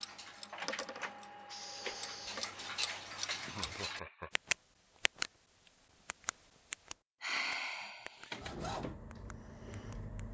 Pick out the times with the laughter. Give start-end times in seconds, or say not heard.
3.4-4.3.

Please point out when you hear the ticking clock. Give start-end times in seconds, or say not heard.
0.0-5.3, 6.0-8.3, 9.1-10.2.